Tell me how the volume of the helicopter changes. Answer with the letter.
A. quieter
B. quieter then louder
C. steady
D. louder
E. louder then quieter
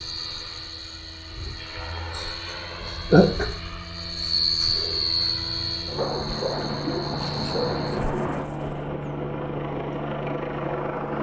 D.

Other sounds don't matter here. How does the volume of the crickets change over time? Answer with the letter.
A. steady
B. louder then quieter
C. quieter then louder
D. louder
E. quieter
B.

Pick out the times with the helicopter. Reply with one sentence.
You can hear the helicopter from 0.0 to 11.1 s.